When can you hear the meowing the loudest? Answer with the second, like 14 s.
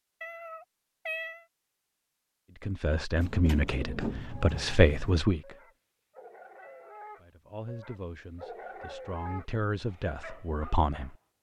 1 s.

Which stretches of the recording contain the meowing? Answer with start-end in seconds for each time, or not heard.
0.2-1.4, 6.6-7.0.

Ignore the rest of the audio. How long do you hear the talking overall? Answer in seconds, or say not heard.
7 s.